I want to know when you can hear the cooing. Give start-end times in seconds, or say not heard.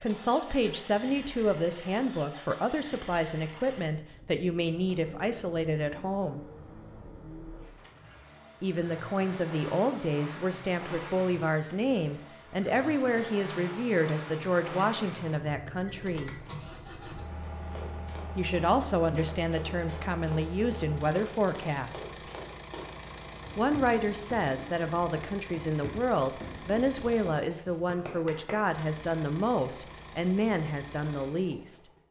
not heard.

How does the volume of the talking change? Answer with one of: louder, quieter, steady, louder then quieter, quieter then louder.
steady.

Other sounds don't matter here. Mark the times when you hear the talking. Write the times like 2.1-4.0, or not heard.
0.0-6.4, 8.6-16.4, 18.4-22.2, 23.6-31.9.